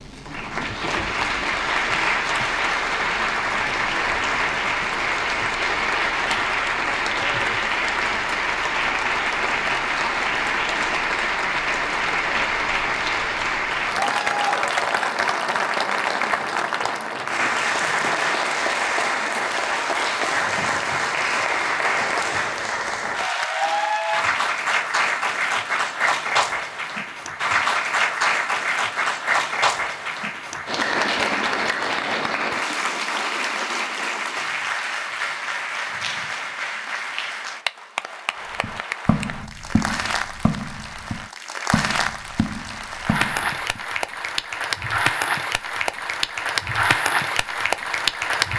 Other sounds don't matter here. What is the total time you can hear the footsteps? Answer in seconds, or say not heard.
5 s.